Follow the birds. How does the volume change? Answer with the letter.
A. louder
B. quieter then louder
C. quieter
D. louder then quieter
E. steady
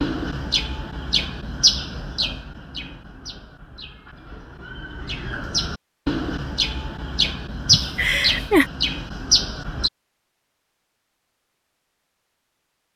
B.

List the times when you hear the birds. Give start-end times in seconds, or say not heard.
0.0-9.9.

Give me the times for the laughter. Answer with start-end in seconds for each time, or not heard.
7.7-8.7.